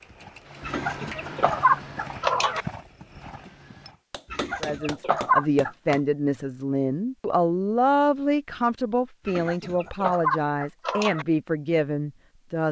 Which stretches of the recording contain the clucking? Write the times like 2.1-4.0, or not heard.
0.7-2.6, 4.3-6.0, 9.2-11.2.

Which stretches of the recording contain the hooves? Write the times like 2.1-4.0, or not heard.
0.0-4.0.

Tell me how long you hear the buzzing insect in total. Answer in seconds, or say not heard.
not heard.